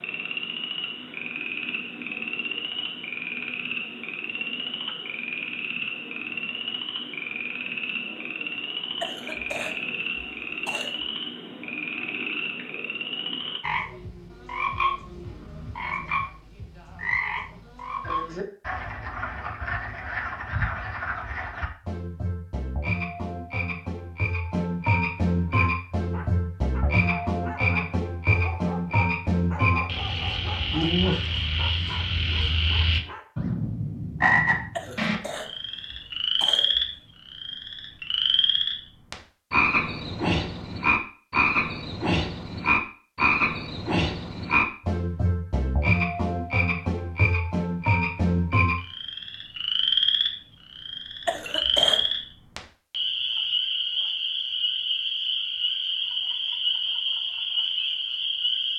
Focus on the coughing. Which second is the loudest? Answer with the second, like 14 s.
52 s.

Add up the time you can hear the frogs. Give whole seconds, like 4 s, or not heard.
59 s.